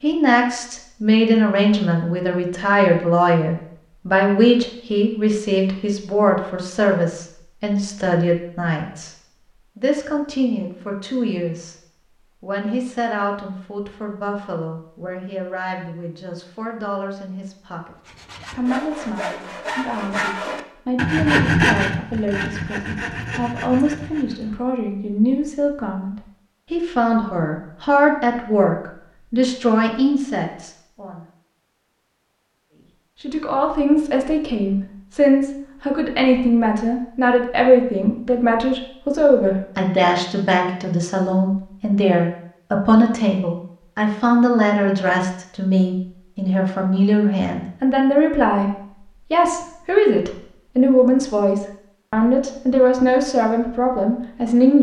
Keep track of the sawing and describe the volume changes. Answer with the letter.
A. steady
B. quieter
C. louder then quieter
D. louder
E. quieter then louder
C.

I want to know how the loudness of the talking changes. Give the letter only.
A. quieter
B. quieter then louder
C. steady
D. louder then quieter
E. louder
B.